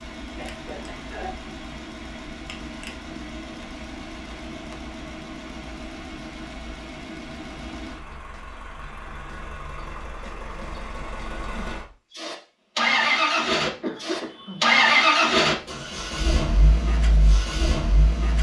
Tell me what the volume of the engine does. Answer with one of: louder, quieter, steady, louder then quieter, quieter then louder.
louder.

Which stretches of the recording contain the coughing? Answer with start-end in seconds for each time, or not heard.
0.3-1.6, 13.6-14.8.